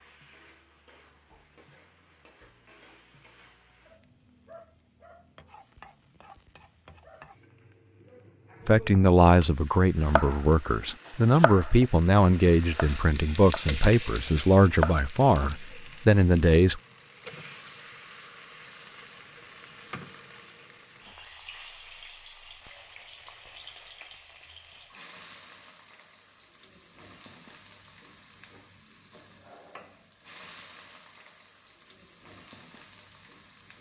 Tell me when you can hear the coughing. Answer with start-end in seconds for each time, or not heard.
not heard.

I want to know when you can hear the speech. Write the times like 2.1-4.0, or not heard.
8.7-16.8.